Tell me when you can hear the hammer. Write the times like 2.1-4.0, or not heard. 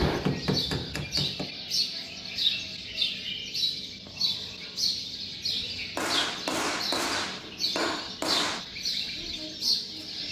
0.0-1.5, 6.0-8.7.